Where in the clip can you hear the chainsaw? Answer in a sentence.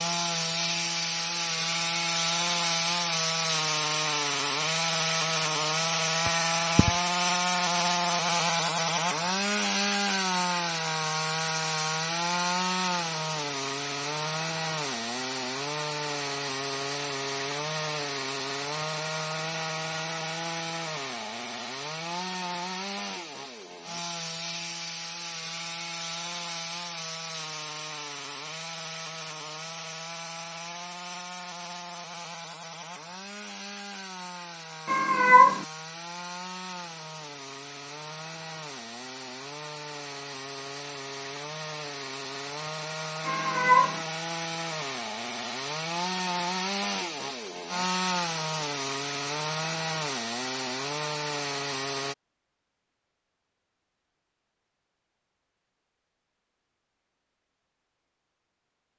You can hear the chainsaw from 0.0 to 52.1 s.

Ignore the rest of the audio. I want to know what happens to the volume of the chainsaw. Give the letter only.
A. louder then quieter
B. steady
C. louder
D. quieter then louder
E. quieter
D.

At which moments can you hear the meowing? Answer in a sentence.
The meowing can be heard from 6.2 to 6.9 s, from 34.9 to 35.6 s and from 43.2 to 44.0 s.